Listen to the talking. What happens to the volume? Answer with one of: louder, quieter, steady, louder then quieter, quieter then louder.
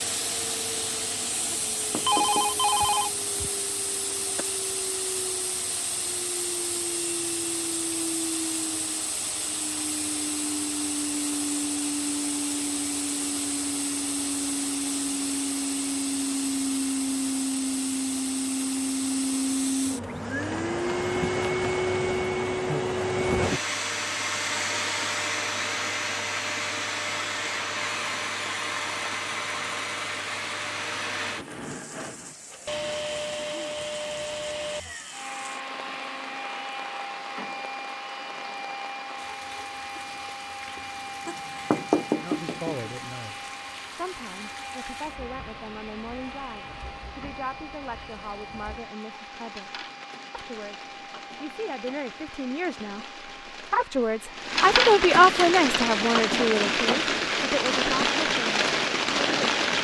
louder.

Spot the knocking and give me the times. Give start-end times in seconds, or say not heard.
1.5-2.6, 41.2-42.9.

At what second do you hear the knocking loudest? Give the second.
42 s.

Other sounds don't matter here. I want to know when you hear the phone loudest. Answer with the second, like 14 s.
2 s.